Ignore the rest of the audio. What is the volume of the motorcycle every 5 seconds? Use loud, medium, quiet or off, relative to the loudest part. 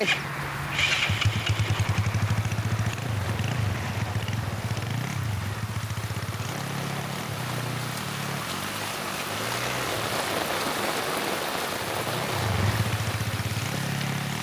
loud, medium, loud.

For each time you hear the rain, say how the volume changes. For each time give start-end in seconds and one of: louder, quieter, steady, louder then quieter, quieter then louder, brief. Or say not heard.
0.0-14.3 louder.